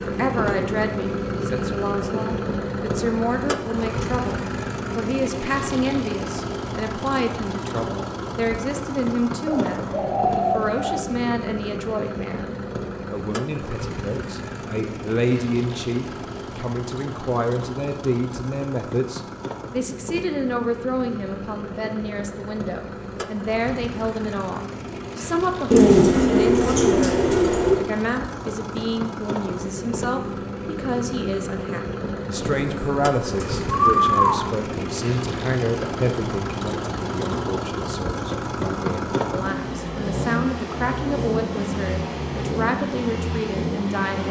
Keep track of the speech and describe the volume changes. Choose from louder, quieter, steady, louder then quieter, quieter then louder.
steady.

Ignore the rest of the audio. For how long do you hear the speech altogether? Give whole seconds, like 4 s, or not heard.
44 s.